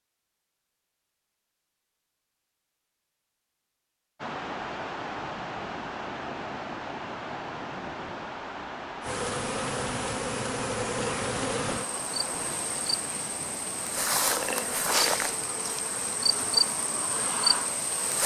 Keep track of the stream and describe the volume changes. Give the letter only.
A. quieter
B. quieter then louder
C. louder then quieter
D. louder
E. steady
A.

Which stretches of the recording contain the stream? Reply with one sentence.
The stream can be heard from 4.2 to 18.2 s.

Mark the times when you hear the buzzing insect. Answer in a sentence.
You can hear the buzzing insect from 9.0 to 18.2 s.